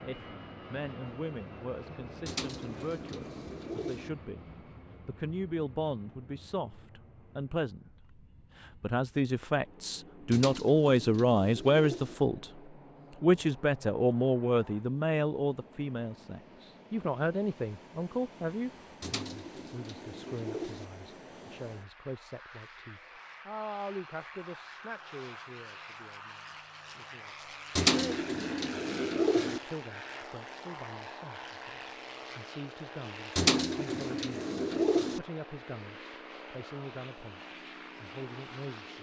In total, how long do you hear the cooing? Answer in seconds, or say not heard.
9 s.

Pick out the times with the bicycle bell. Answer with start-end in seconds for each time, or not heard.
not heard.